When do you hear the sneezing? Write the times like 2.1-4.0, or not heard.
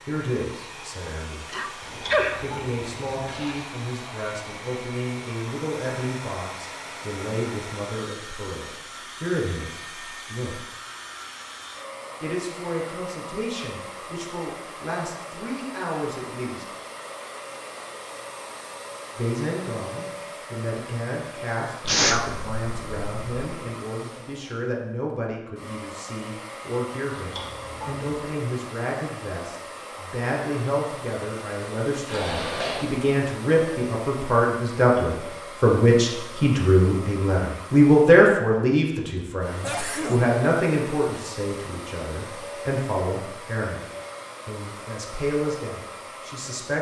1.5-2.4, 21.9-23.4, 39.6-40.3.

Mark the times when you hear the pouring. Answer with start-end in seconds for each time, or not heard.
1.8-3.6, 27.1-28.1, 32.0-33.0.